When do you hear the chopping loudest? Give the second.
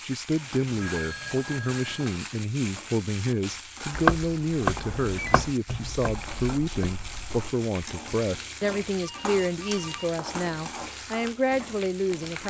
4 s.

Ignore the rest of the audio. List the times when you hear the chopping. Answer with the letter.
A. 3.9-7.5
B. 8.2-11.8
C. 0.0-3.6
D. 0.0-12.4
A.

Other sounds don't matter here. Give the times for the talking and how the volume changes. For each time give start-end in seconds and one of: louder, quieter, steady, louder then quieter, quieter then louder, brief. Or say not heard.
0.0-12.4 steady.